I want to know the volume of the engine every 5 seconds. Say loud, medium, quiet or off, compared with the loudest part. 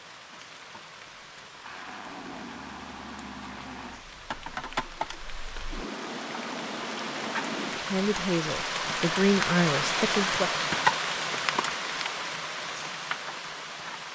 medium, loud, off.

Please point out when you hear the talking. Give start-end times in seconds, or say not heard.
7.9-10.5.